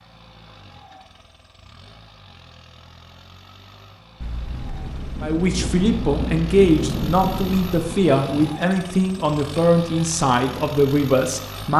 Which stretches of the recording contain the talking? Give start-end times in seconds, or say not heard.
5.2-11.7.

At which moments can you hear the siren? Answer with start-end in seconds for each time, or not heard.
not heard.